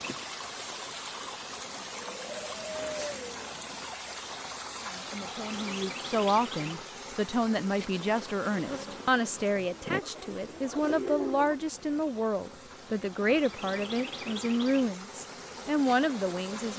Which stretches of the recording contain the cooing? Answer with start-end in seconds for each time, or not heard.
1.7-3.9, 9.6-11.6.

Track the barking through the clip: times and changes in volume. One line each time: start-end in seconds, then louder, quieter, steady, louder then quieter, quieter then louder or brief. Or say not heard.
not heard.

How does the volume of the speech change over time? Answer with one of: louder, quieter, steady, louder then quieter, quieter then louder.
steady.